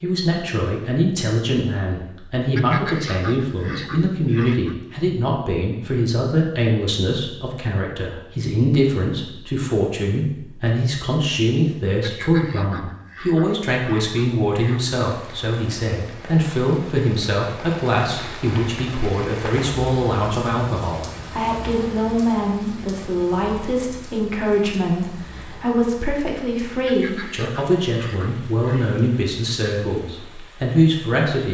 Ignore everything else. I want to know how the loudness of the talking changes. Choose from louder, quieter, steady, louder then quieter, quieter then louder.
steady.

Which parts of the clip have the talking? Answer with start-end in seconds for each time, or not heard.
0.0-31.5.